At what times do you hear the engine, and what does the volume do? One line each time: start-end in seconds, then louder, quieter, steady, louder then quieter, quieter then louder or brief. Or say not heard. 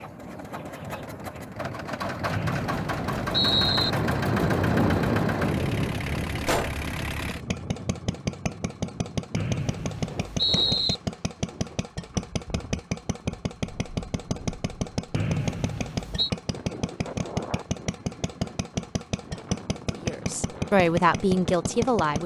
0.0-22.2 steady.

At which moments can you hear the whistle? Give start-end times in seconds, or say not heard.
2.3-3.9, 9.3-10.9, 15.2-16.3.